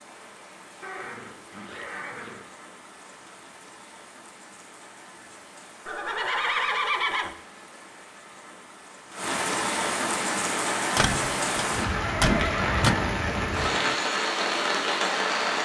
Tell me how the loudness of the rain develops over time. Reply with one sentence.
The loudness of the rain goes up.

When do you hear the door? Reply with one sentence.
You can hear the door from 10.9 to 12.9 s.